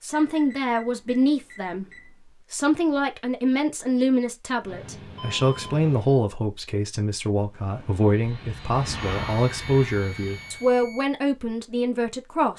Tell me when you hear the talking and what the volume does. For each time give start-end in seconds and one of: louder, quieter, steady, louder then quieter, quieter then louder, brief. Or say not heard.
0.0-1.9 brief
2.5-12.5 steady.